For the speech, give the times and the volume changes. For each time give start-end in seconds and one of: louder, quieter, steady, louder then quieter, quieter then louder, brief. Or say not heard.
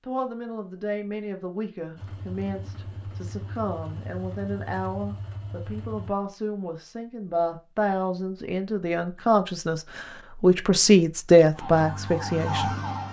0.0-12.8 louder.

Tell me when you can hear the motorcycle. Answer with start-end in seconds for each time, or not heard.
1.9-6.1.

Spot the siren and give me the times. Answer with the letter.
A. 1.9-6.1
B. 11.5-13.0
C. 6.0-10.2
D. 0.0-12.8
B.